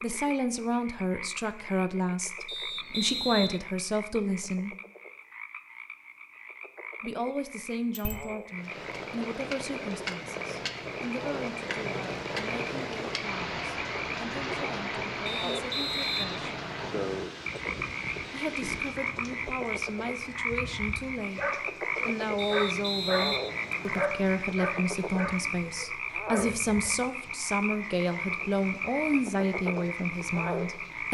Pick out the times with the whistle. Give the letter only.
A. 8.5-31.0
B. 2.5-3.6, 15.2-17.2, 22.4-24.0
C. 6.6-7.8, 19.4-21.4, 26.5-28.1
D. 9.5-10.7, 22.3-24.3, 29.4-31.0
B.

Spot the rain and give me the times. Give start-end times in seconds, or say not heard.
8.5-31.0.